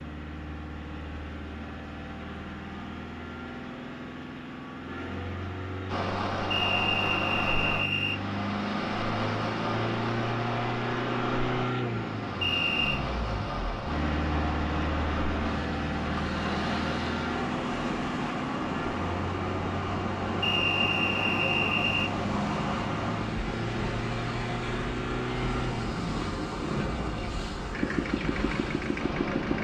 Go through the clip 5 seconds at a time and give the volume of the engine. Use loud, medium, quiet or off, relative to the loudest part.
medium, loud, loud, loud, loud, loud.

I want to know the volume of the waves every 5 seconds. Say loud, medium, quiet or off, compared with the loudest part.
off, loud, loud, loud, loud, loud.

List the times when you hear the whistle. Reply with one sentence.
You can hear the whistle from 6.5 to 8.2 s, from 12.4 to 13.0 s and from 20.4 to 22.1 s.